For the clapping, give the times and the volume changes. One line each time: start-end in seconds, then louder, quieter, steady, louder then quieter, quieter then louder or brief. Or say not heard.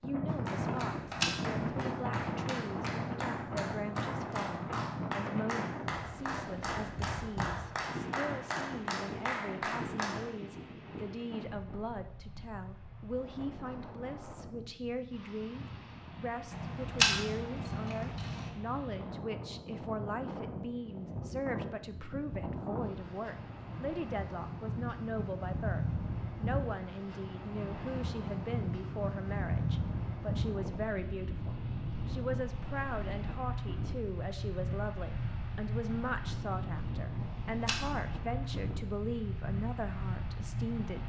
0.2-10.3 louder.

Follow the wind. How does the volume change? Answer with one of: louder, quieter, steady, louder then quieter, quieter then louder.
quieter then louder.